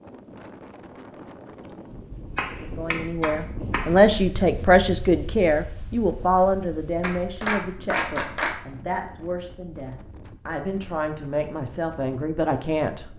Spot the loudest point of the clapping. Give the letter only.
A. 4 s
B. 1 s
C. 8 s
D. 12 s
C.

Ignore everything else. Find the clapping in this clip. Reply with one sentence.
You can hear the clapping from 2.4 to 4.0 s and from 7.0 to 8.6 s.